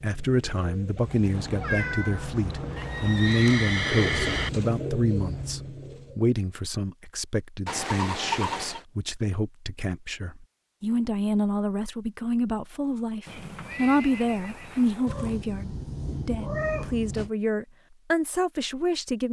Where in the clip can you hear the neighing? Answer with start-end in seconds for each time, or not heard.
2.8-4.5, 7.7-8.8, 13.2-15.2.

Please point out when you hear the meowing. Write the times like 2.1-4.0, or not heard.
1.3-3.3, 15.1-17.3.